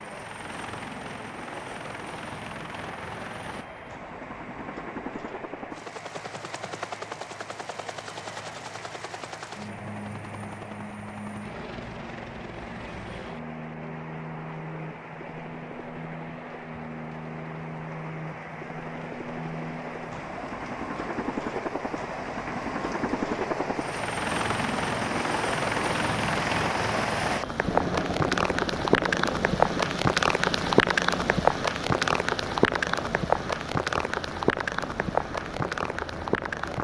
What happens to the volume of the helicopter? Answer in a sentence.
The loudness of the helicopter goes up, then down.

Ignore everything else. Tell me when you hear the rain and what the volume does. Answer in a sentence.
You can hear the rain from 0.0 to 36.7 s, getting louder.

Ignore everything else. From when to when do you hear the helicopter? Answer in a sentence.
You can hear the helicopter from 0.0 to 36.7 s.